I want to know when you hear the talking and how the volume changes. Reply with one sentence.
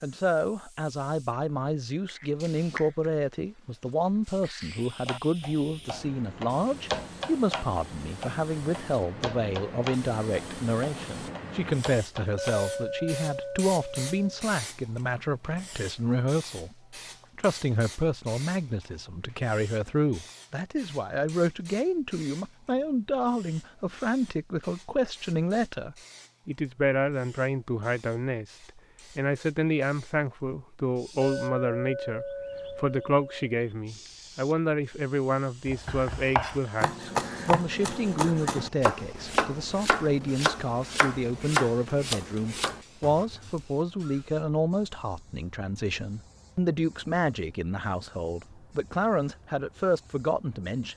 You can hear the talking from 0.0 to 16.8 s, at a steady volume; and from 17.4 to 50.9 s, at a steady volume.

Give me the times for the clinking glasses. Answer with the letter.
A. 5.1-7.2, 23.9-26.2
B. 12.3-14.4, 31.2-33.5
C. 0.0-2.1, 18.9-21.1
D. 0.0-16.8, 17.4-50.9
B.